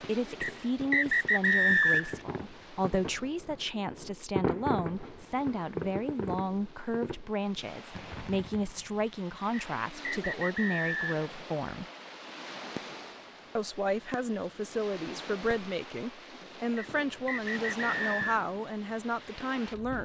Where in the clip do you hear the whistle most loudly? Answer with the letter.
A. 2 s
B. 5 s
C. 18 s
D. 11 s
A.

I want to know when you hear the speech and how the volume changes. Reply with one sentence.
You can hear the speech from 0.1 to 11.8 s, at a steady volume; and from 13.6 to 19.9 s, at a steady volume.